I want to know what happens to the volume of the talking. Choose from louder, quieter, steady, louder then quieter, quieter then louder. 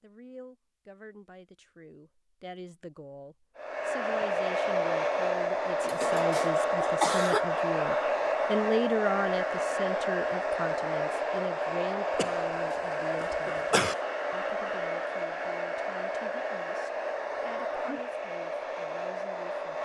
louder then quieter.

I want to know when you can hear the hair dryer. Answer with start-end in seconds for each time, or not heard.
3.5-19.8.